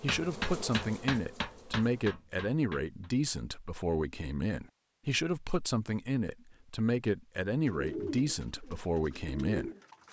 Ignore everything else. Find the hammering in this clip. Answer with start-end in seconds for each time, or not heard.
0.1-3.1.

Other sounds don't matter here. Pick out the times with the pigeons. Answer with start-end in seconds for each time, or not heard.
7.7-10.0.